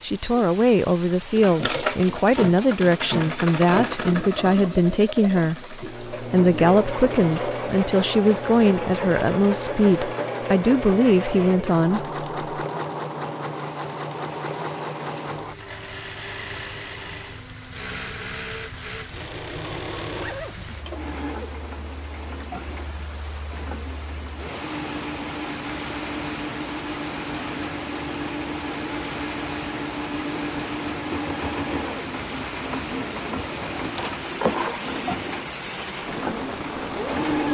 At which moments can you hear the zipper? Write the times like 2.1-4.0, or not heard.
20.1-20.6.